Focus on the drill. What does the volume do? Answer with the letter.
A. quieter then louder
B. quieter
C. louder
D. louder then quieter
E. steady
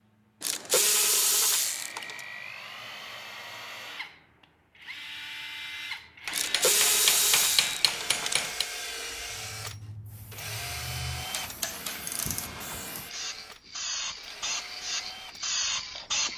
D.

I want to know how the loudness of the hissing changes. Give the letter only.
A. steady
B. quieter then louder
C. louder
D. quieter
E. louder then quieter
C.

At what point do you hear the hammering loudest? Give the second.
7 s.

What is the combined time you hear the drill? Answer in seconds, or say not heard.
16 s.